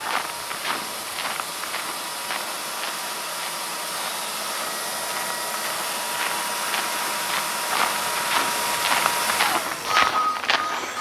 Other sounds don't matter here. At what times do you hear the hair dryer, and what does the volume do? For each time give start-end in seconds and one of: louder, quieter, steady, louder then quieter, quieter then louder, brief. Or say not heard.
0.0-10.9 louder.